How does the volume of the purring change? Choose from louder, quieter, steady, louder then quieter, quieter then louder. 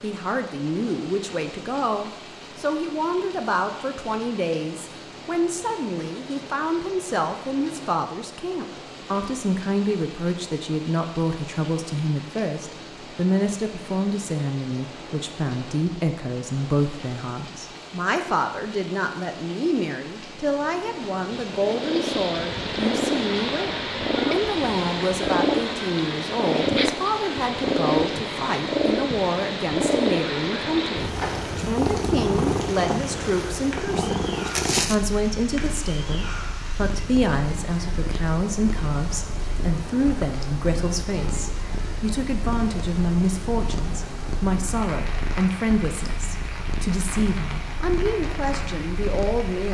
quieter.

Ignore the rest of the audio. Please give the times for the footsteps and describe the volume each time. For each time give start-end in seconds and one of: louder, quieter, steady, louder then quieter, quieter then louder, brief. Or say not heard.
not heard.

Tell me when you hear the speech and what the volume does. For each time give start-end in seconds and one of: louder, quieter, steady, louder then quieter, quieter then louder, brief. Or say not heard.
0.0-49.6 steady.